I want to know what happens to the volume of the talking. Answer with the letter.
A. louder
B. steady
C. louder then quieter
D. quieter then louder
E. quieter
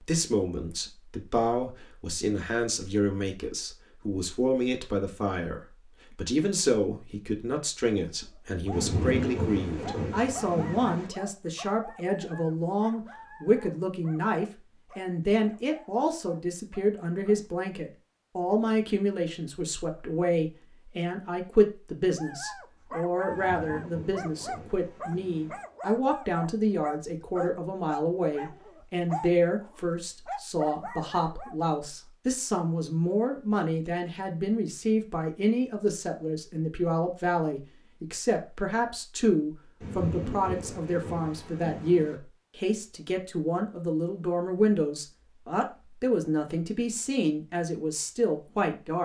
B.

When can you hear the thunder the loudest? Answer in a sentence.
The loudest moment of the thunder is at 9 seconds.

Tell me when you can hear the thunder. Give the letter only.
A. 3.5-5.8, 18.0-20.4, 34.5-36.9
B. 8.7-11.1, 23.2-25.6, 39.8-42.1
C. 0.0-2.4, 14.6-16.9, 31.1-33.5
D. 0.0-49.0
B.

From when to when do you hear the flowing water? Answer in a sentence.
The flowing water can't be heard in this clip.